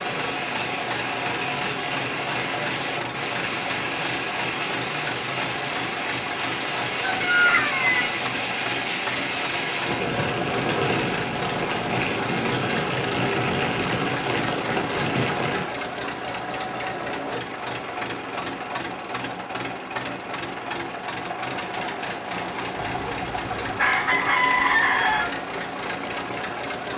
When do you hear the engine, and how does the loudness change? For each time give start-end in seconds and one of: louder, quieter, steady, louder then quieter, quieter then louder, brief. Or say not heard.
0.0-26.9 steady.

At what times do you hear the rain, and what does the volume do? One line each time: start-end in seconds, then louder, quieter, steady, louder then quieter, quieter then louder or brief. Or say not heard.
0.0-15.7 steady.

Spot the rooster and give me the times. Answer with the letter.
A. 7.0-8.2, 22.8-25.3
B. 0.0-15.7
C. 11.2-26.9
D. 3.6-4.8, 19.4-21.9
A.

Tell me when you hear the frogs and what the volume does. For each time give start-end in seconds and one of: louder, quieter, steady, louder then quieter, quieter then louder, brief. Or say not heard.
not heard.